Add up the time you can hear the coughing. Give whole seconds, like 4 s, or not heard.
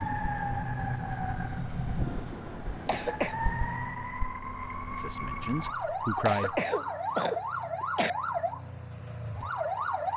2 s.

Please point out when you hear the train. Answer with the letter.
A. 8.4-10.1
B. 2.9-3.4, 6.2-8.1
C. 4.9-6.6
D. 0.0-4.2
D.